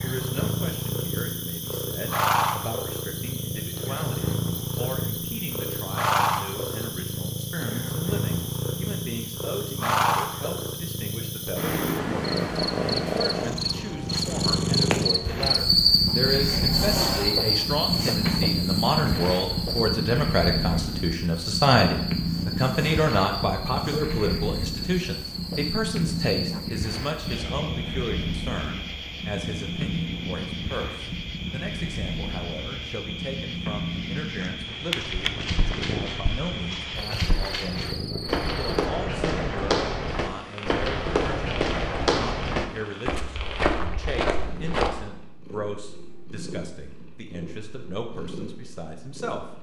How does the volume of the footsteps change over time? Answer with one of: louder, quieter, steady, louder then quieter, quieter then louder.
louder.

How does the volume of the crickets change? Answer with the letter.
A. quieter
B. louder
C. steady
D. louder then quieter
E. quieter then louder
D.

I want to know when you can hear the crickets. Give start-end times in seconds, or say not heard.
0.0-38.9.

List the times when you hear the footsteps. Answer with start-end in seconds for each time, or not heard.
34.6-44.9.